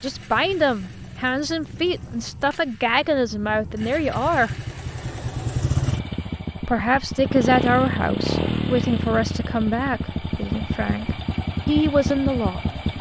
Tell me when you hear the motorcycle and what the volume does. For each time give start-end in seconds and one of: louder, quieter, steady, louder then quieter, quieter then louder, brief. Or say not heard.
0.0-12.9 louder.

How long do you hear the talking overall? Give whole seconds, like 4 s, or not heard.
11 s.